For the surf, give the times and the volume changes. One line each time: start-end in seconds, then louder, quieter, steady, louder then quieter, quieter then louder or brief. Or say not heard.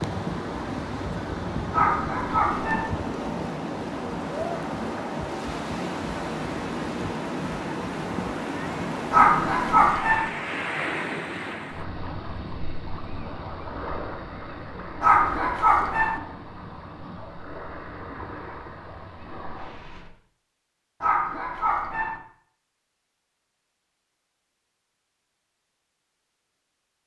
0.0-20.1 quieter.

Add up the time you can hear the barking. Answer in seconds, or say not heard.
5 s.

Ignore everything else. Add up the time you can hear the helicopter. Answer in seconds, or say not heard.
not heard.